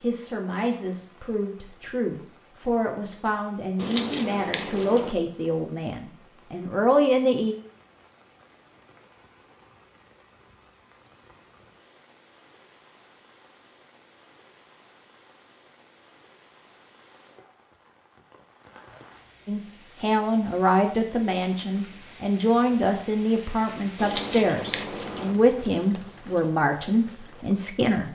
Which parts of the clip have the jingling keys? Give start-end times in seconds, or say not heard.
3.8-5.2, 23.9-25.4.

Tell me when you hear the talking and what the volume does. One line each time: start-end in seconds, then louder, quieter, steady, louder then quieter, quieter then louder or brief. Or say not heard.
0.0-7.5 louder
19.4-28.0 steady.